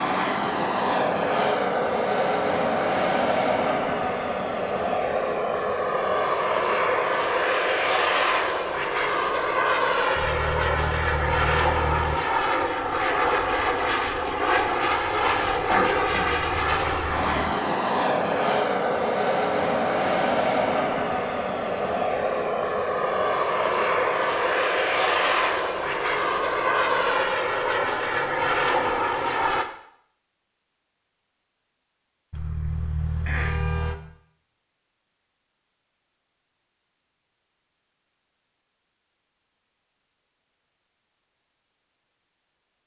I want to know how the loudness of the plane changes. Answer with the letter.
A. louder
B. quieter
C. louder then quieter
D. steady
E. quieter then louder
D.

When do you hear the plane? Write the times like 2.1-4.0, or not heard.
0.0-29.6.